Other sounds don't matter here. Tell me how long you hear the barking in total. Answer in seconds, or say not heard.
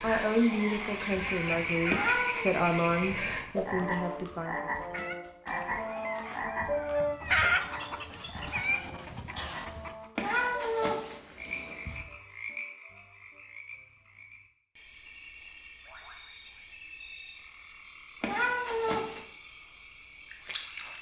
not heard.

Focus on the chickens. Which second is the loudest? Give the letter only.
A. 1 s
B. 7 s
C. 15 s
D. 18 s
B.